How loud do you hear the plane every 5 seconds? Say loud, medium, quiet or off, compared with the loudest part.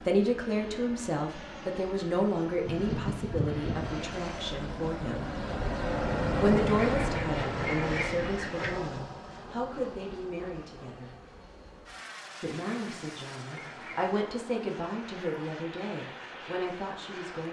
medium, loud, quiet, medium.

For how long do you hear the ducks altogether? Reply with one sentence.
The ducks can be heard for 5 seconds in total.